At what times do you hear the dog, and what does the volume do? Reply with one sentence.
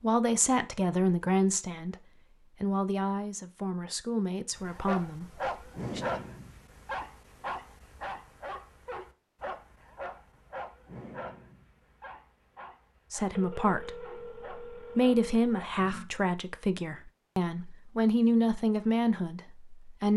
The dog can be heard from 4.5 to 15.7 s, getting quieter.